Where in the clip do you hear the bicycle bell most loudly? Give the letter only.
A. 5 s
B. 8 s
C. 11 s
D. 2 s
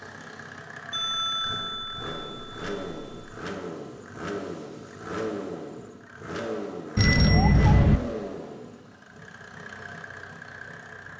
B.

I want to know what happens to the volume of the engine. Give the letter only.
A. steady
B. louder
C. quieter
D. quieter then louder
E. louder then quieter
E.